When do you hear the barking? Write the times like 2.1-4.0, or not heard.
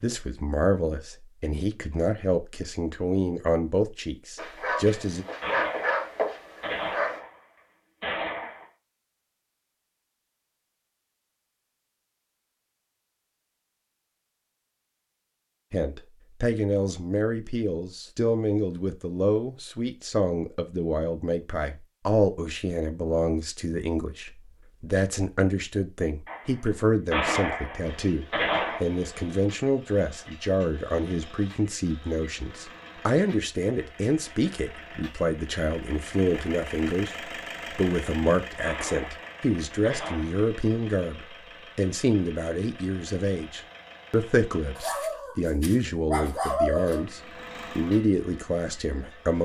4.3-7.2, 44.8-47.0.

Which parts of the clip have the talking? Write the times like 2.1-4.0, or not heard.
0.0-5.2, 15.7-49.3.